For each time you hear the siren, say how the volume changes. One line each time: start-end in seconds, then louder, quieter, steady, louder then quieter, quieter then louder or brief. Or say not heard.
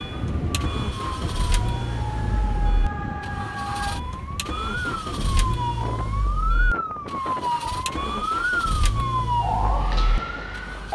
0.0-10.9 louder.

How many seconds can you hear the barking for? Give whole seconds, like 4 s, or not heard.
not heard.